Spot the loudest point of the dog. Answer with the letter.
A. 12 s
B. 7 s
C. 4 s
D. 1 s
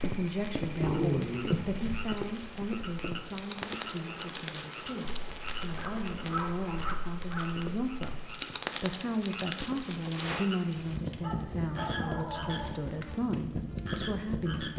D.